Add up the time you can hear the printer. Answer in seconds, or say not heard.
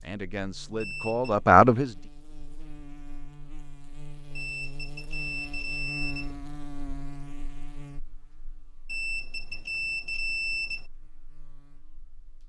not heard.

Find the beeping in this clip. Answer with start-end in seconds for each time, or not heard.
0.8-1.4, 4.3-6.3, 8.8-10.8.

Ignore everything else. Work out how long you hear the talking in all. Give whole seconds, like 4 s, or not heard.
2 s.